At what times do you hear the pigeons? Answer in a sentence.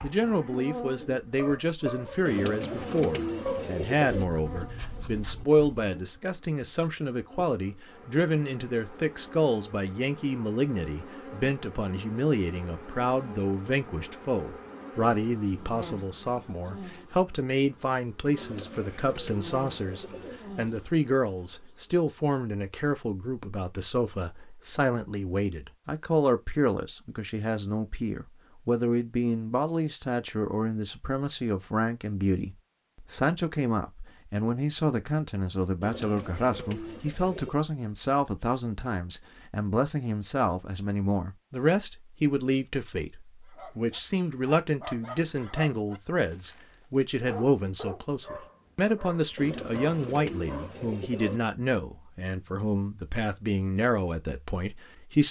The pigeons can be heard from 2.2 to 4.2 s, from 18.4 to 20.4 s, from 35.8 to 37.6 s and from 49.4 to 51.4 s.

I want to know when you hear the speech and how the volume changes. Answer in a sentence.
The speech can be heard from 0.0 to 55.2 s, at a steady volume.